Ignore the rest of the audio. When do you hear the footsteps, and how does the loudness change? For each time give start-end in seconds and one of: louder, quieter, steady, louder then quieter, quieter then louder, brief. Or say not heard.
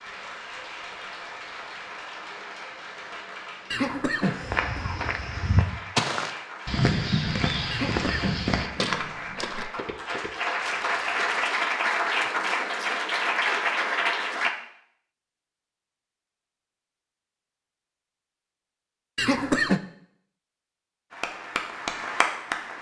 4.4-11.4 quieter.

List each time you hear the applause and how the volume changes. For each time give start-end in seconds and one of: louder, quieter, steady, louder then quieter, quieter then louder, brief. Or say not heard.
0.0-14.5 louder
21.1-22.7 brief.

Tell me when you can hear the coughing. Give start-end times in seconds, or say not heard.
3.7-5.0, 7.7-9.0, 19.1-19.8.